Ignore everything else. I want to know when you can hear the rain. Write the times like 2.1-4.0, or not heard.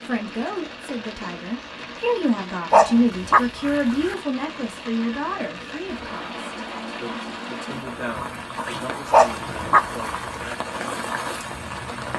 0.0-12.1.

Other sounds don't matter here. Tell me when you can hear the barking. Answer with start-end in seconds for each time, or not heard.
2.7-4.2, 9.1-10.6.